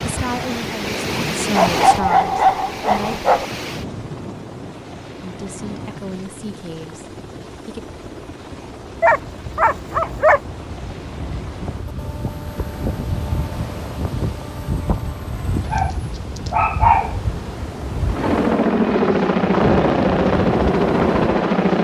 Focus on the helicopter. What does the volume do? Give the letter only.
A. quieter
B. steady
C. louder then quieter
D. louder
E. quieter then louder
D.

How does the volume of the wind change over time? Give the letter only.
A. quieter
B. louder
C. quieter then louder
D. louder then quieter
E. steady
C.